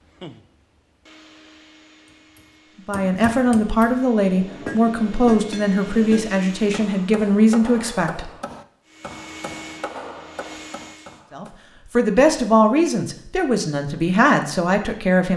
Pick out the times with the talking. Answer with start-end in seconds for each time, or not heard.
2.9-8.3, 11.3-15.3.